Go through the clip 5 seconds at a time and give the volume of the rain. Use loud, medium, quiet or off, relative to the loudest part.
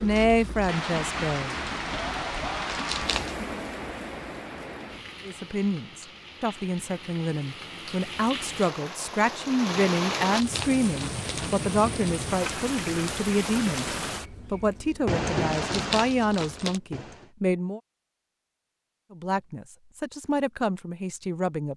loud, medium, loud, loud, off.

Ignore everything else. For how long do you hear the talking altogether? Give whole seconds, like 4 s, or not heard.
16 s.